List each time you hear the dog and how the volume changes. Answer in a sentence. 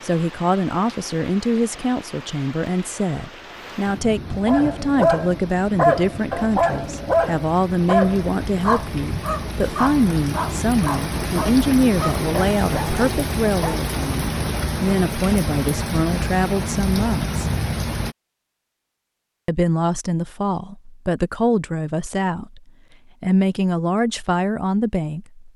You can hear the dog from 4.5 to 13.8 s, getting quieter.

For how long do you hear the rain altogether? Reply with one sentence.
The rain can be heard for 18 seconds in total.